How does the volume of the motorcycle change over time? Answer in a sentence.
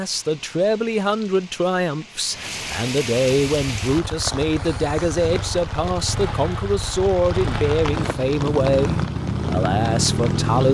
The volume of the motorcycle goes up.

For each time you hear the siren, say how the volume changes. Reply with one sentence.
The siren can't be heard in this clip.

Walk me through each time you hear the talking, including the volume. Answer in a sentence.
You can hear the talking from 0.0 to 10.6 s, at a steady volume.